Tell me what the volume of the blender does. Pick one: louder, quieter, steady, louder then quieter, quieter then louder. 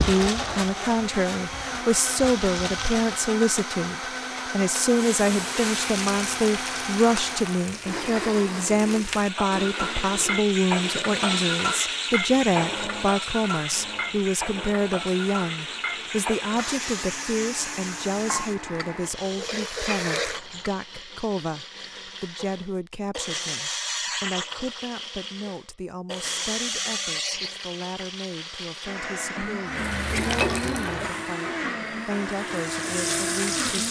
quieter then louder.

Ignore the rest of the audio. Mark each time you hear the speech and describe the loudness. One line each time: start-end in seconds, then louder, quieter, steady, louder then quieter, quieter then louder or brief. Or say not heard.
0.0-33.8 quieter.